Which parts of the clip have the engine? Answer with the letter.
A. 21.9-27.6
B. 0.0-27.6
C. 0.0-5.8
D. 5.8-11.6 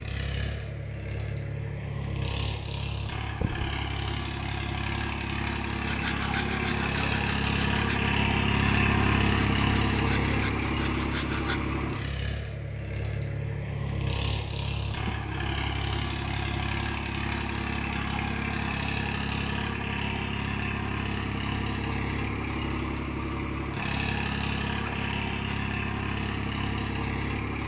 B.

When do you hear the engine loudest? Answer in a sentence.
The volume of the engine peaks at 9 seconds.